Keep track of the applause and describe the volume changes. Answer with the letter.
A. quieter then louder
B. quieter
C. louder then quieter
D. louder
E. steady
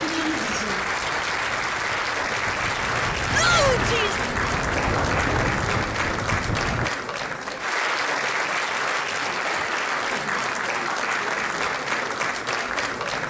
E.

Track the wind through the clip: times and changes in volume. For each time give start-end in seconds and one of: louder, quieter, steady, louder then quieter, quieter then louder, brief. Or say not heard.
0.0-6.9 louder.